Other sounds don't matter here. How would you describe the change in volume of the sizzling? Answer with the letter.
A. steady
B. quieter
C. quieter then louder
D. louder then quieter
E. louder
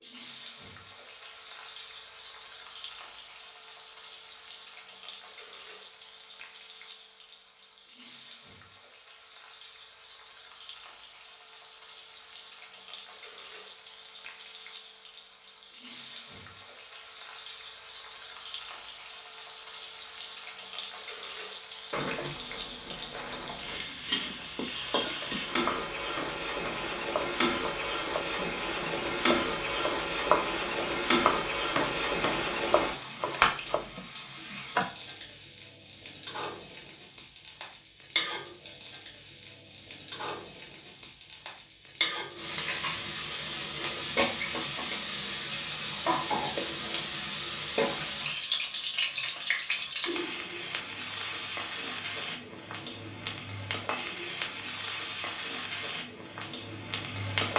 E.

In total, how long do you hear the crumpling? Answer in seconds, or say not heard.
2 s.